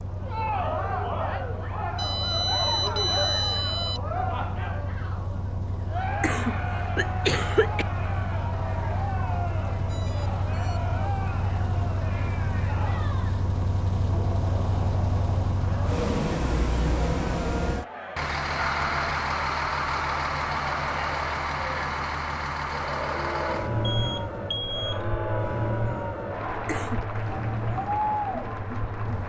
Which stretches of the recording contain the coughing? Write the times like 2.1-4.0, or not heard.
6.2-7.8, 26.6-27.1.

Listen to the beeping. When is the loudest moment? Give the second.
3 s.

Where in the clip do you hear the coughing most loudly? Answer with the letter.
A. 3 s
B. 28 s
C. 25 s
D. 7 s
D.